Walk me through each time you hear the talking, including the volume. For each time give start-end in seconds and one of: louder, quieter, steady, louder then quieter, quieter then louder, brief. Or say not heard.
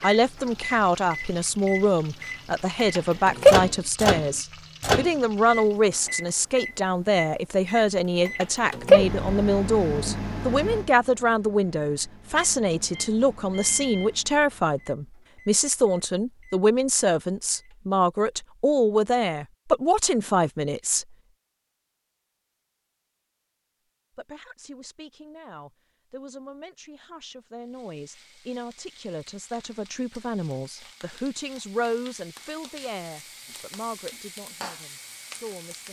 0.0-21.1 steady
24.1-35.8 louder then quieter.